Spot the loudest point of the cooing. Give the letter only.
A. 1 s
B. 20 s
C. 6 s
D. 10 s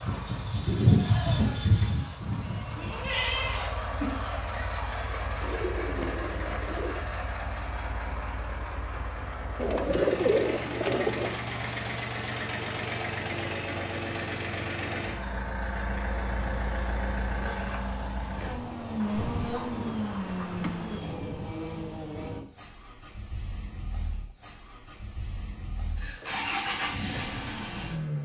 D.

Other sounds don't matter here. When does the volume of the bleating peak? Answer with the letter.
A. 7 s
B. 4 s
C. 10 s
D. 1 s
D.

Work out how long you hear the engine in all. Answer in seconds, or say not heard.
28 s.